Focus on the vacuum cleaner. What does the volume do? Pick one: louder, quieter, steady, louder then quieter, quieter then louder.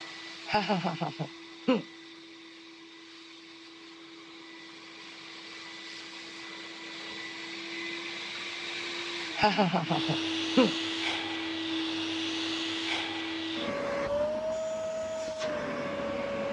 louder.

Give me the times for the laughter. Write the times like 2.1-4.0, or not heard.
0.5-1.9, 9.3-10.8.